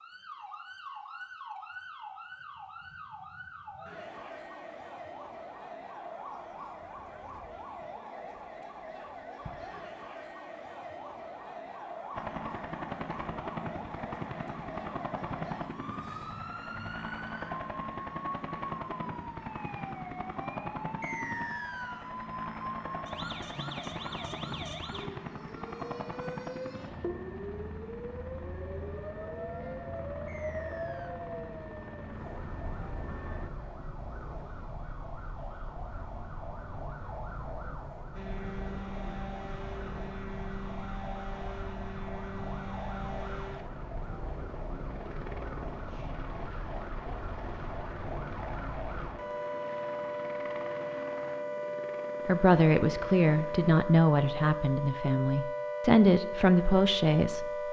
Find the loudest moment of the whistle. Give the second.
21 s.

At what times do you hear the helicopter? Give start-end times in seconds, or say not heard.
12.1-33.5, 38.1-53.8.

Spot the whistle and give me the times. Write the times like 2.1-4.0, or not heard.
21.0-22.1, 30.2-31.1.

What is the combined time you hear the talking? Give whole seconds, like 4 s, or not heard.
5 s.